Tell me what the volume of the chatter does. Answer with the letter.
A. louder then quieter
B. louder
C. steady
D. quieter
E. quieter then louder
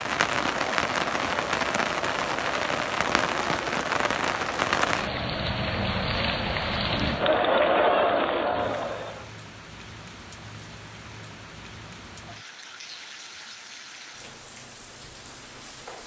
B.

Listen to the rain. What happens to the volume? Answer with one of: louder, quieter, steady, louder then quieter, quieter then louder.
quieter.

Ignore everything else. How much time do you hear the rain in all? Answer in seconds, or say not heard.
16 s.